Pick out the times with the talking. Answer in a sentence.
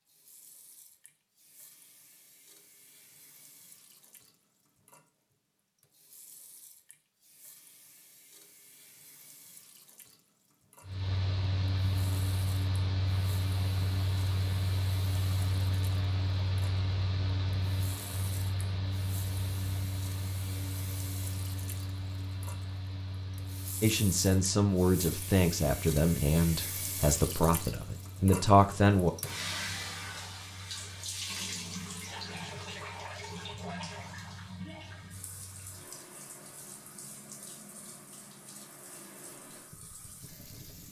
The talking can be heard from 23.8 to 29.1 s.